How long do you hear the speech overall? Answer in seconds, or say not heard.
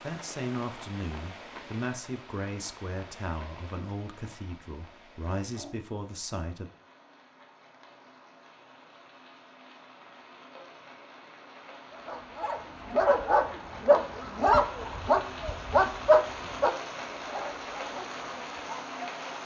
7 s.